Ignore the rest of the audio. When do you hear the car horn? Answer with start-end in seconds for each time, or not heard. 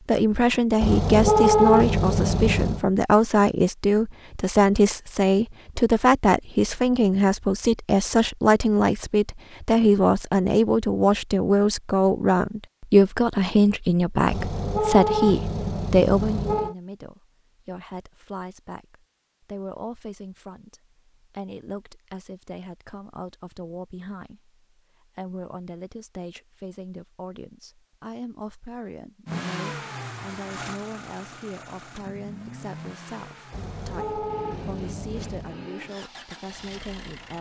0.8-2.9, 14.2-16.8, 33.5-35.6.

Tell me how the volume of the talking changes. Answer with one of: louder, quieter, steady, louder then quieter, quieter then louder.
quieter.